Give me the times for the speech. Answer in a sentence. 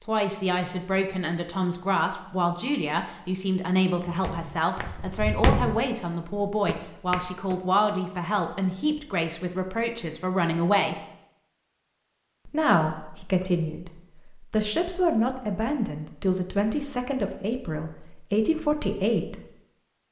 You can hear the speech from 0.0 to 10.9 s and from 12.4 to 19.4 s.